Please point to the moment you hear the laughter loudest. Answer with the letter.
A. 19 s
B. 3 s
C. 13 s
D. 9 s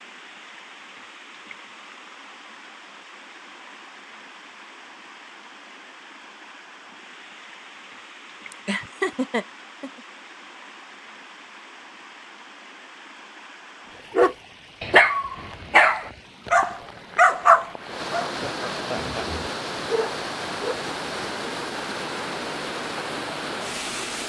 D.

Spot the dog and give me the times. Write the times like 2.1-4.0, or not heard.
14.2-20.8.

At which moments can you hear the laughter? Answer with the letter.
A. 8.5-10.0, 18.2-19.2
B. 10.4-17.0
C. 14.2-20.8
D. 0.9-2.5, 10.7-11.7
A.